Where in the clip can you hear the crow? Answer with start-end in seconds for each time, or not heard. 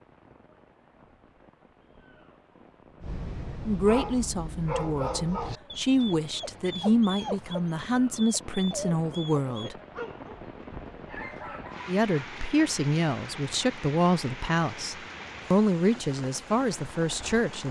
not heard.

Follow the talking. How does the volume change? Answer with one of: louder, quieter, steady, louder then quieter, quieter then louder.
steady.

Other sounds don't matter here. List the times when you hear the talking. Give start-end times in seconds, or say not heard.
3.6-9.8, 11.8-17.6.